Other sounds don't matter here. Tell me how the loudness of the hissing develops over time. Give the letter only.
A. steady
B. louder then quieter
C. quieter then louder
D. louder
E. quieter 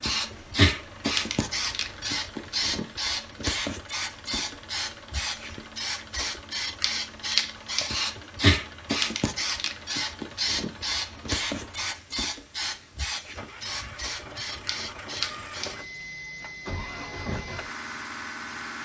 E.